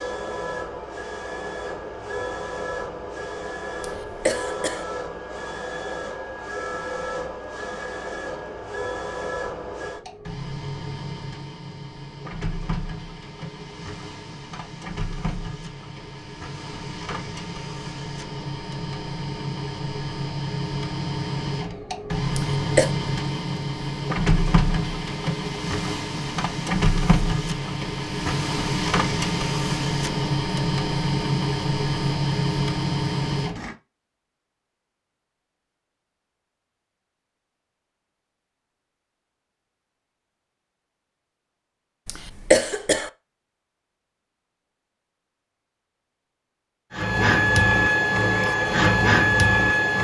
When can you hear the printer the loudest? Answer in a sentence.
The loudest moment of the printer is at 49 seconds.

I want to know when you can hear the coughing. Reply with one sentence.
You can hear the coughing from 3.8 to 4.8 s, from 22.4 to 22.9 s and from 42.0 to 43.1 s.